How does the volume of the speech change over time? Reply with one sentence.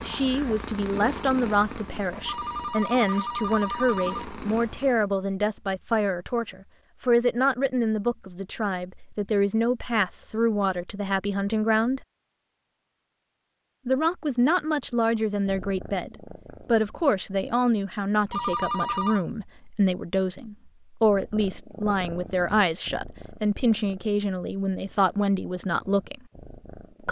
The volume of the speech stays about the same.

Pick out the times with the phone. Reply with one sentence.
You can hear the phone from 2.2 to 4.2 s and from 18.3 to 19.2 s.